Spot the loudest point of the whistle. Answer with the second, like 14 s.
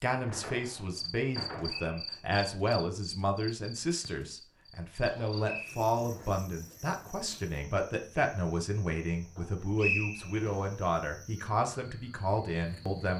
10 s.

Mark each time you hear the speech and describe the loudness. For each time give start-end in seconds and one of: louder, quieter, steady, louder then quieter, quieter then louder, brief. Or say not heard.
0.0-13.1 steady.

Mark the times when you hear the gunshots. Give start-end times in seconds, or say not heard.
0.2-2.0.